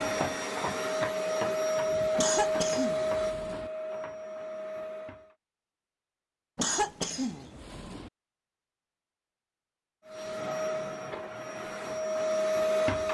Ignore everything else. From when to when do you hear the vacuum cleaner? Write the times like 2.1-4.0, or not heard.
0.0-5.3, 10.1-13.0.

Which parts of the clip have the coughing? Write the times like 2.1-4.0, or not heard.
2.1-3.7, 6.5-8.1.